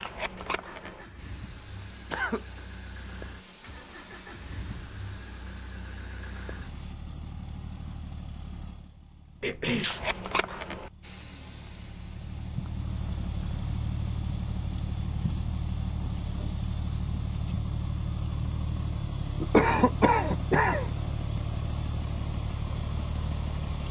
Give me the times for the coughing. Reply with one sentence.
The coughing can be heard from 2.1 to 2.6 s, from 9.4 to 9.9 s and from 19.4 to 20.9 s.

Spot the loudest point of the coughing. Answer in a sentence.
The volume of the coughing peaks at 20 seconds.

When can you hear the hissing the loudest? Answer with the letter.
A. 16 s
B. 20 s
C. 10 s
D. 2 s
C.